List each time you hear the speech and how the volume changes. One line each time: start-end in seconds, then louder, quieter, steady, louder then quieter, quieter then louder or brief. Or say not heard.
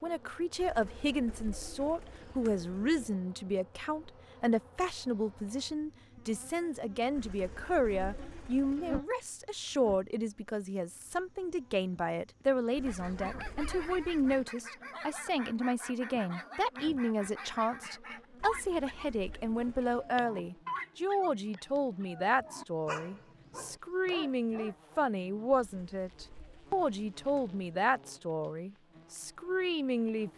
0.0-30.3 steady.